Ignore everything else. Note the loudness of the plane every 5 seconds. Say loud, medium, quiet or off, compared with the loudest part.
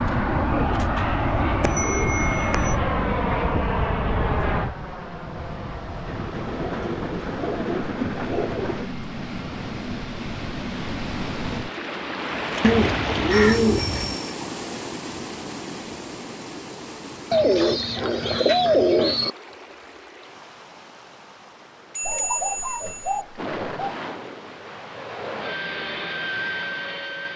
loud, medium, medium, off, medium, medium.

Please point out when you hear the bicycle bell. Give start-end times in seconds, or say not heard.
1.6-2.8, 13.3-14.2, 21.9-23.2.